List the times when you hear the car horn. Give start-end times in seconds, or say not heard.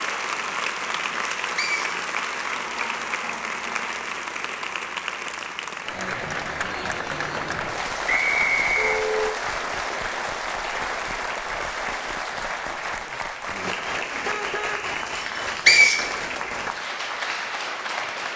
2.6-3.9, 8.8-9.3, 14.2-14.9.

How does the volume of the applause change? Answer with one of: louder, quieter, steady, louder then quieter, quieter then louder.
steady.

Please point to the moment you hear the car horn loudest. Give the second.
9 s.